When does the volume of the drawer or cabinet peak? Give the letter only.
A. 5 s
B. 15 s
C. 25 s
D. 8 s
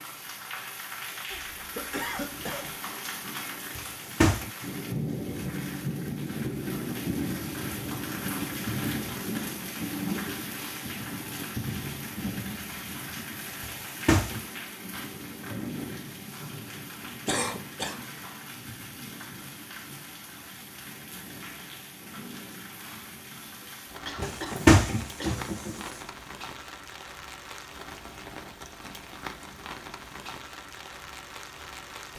C.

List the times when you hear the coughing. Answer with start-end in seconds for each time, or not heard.
1.3-2.8, 17.2-18.1, 23.6-25.4.